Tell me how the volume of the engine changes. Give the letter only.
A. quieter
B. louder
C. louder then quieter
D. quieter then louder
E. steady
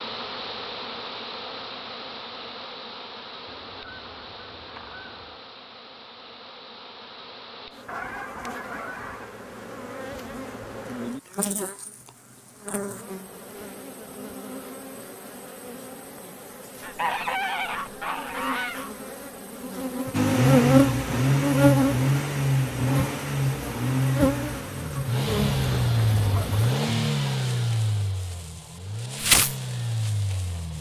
A.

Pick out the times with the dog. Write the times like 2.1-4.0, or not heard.
not heard.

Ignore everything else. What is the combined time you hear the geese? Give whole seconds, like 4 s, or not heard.
7 s.